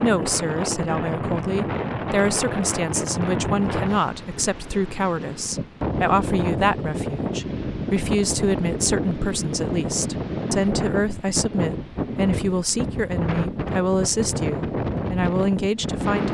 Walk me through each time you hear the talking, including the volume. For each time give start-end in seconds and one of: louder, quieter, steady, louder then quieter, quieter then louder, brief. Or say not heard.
0.0-16.2 steady.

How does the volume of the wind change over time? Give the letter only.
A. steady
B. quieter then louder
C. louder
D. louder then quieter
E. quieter
A.